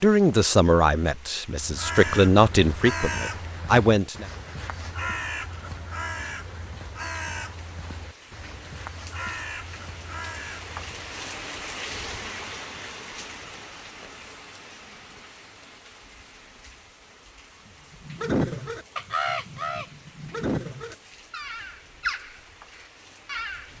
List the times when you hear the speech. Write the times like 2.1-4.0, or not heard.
0.0-4.2.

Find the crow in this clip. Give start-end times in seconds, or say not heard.
1.5-11.2, 17.9-23.7.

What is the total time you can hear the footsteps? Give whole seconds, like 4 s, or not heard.
not heard.